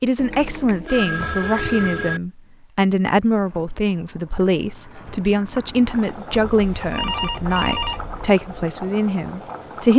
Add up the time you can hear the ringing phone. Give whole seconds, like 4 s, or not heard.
4 s.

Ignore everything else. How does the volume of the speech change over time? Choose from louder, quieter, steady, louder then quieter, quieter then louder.
steady.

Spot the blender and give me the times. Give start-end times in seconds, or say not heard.
not heard.